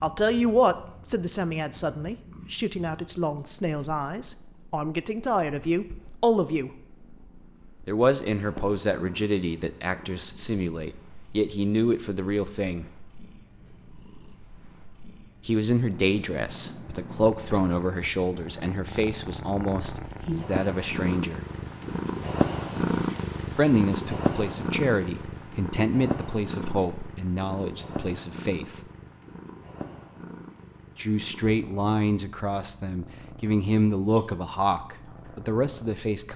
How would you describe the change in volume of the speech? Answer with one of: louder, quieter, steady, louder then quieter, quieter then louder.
steady.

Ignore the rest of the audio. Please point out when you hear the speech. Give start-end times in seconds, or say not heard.
0.0-6.7, 7.8-12.9, 15.4-21.4, 23.6-28.8, 30.9-36.3.